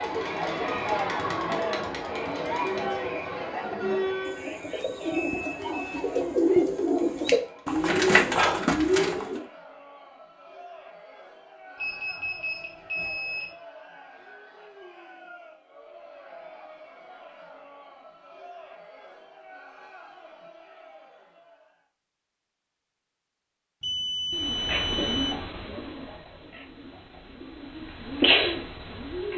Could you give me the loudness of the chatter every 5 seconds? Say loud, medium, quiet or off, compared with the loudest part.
loud, quiet, quiet, quiet, quiet, off.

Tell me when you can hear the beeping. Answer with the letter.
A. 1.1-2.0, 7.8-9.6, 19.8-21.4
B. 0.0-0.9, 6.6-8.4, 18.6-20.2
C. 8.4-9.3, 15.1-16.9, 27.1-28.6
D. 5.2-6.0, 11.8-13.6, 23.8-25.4
D.